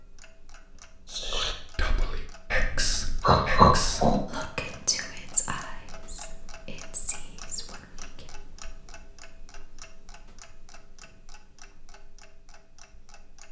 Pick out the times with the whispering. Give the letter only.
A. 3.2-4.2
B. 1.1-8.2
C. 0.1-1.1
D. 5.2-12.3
B.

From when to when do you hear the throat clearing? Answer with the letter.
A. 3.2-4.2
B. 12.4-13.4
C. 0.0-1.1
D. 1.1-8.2
A.